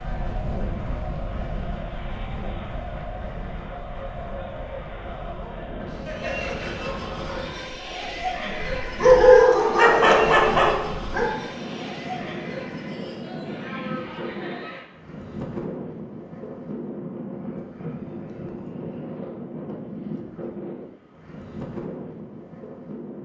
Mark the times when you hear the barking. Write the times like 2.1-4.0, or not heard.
9.0-11.3.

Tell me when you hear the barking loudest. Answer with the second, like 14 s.
9 s.